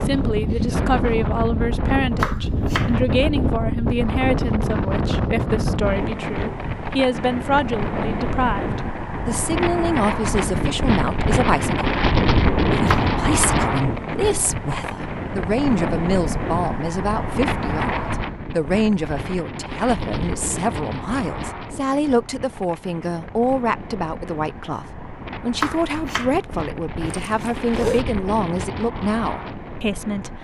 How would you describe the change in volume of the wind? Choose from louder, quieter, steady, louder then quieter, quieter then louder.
quieter.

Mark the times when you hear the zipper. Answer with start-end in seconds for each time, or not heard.
27.1-28.1.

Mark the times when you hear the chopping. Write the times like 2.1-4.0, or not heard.
2.2-3.0, 12.8-13.7, 25.6-26.4.